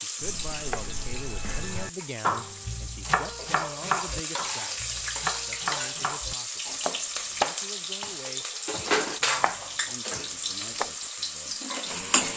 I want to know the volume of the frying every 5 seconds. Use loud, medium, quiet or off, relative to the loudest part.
medium, loud, loud.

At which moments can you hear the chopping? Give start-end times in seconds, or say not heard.
0.2-10.8.